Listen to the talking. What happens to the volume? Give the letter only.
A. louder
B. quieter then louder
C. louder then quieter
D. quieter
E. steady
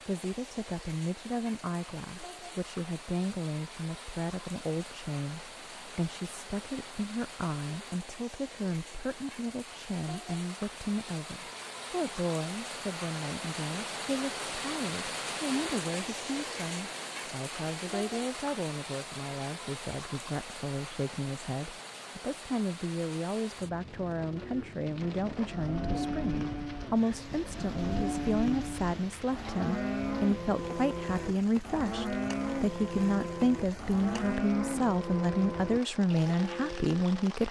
A.